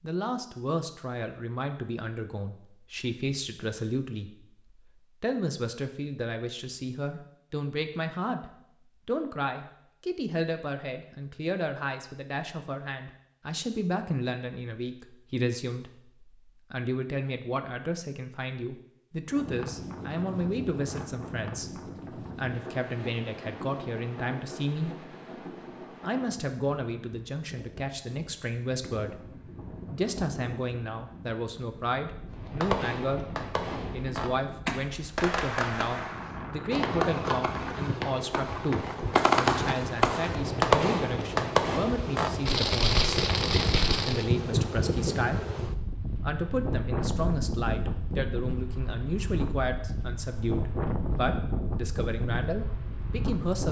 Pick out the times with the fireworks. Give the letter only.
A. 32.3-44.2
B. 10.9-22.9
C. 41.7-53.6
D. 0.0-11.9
A.